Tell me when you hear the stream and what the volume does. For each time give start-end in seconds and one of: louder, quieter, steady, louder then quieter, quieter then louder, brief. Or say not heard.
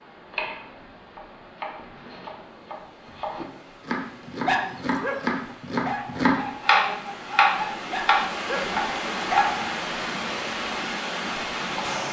0.0-12.0 louder.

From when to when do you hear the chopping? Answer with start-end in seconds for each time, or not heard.
0.3-9.6.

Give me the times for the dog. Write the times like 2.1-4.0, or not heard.
4.3-9.6.